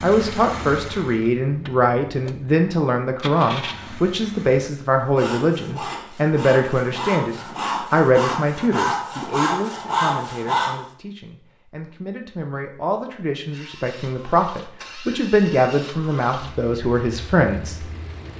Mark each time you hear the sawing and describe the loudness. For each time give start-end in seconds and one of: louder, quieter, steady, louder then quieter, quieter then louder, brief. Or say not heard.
5.1-10.8 louder.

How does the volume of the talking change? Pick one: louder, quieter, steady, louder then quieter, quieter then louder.
quieter then louder.